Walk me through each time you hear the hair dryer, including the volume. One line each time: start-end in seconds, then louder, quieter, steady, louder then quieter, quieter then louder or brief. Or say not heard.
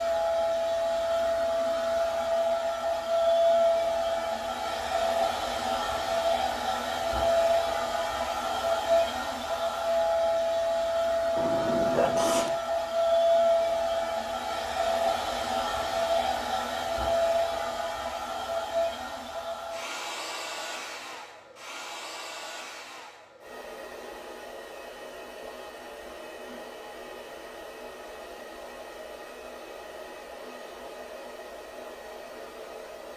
0.0-33.1 quieter.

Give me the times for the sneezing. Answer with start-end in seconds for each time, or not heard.
11.3-12.6.